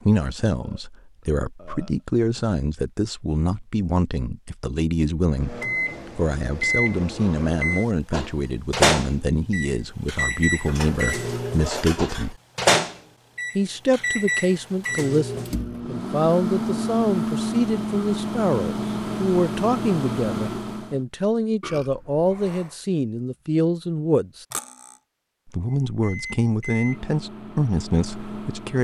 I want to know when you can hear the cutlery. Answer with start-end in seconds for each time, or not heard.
10.7-12.3, 24.5-25.0.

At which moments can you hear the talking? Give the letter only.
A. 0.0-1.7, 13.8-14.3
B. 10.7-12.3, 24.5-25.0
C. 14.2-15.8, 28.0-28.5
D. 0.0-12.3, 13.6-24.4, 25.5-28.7
D.